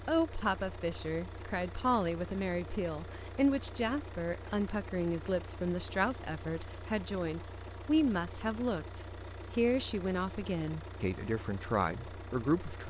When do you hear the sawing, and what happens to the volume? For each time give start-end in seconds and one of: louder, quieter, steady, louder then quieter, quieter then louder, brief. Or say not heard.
not heard.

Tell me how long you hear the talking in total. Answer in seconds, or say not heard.
13 s.